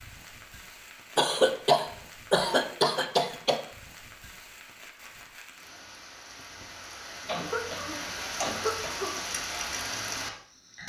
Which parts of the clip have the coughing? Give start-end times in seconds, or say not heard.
1.1-3.6, 7.2-9.2.